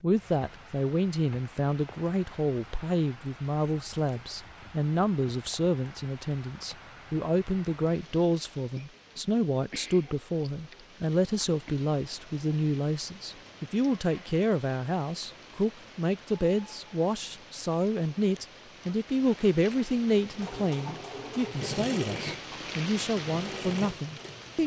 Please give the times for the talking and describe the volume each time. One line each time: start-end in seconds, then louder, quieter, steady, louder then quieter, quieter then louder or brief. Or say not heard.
0.0-24.6 steady.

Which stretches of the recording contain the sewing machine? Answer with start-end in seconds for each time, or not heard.
20.1-24.6.